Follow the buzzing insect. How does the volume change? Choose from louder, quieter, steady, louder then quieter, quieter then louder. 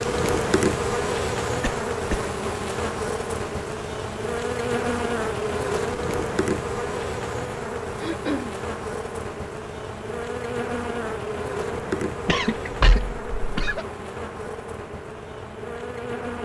quieter.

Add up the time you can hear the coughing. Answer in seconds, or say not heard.
3 s.